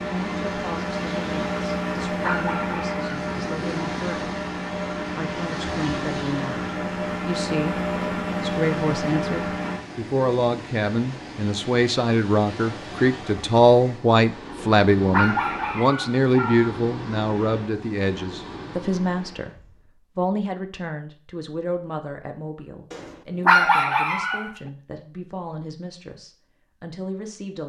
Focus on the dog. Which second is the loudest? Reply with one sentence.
The loudest moment of the dog is at 24 seconds.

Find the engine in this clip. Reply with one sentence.
You can hear the engine from 0.0 to 9.8 s.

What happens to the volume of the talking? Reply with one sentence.
The loudness of the talking goes up, then down.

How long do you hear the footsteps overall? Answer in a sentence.
You can't hear the footsteps here.